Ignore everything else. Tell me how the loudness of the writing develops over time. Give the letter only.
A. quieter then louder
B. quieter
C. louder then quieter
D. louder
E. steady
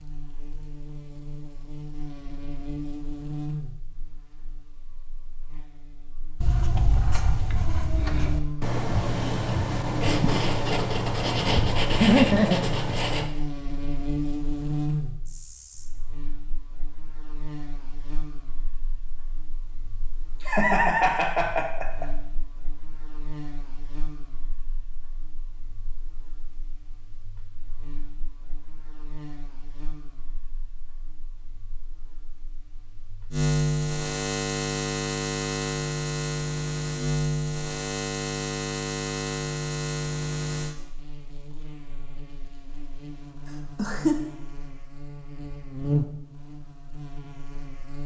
D.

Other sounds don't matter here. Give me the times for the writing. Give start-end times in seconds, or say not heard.
6.4-13.3.